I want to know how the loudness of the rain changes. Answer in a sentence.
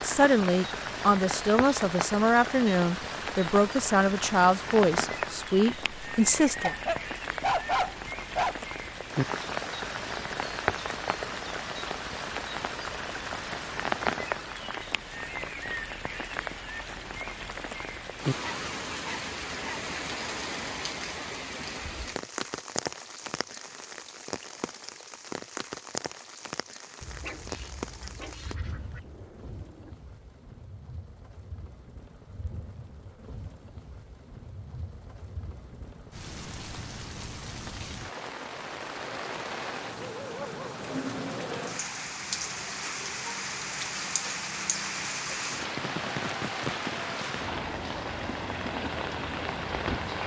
The loudness of the rain goes down, then up.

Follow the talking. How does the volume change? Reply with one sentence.
The loudness of the talking stays about the same.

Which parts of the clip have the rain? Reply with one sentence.
The rain can be heard from 0.0 to 50.2 s.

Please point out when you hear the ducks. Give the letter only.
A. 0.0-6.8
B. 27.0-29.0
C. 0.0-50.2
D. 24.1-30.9
B.